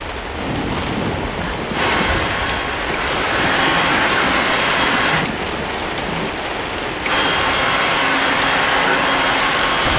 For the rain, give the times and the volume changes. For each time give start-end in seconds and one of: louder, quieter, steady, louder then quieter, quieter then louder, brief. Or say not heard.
0.0-9.9 steady.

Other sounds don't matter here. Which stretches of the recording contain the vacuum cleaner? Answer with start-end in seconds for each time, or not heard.
1.7-5.3, 7.0-9.9.